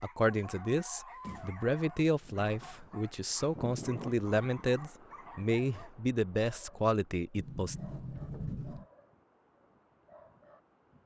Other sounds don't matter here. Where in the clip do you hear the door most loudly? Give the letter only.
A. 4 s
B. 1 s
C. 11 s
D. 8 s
D.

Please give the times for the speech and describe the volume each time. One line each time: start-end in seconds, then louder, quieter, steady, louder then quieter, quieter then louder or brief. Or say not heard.
0.0-7.8 steady.